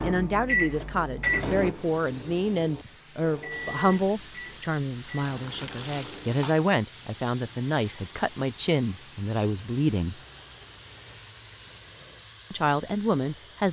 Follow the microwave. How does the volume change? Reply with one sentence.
The volume of the microwave goes down.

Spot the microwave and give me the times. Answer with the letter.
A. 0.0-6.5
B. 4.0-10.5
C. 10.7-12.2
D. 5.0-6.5
A.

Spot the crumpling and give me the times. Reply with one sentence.
You can hear the crumpling from 5.0 to 6.5 s.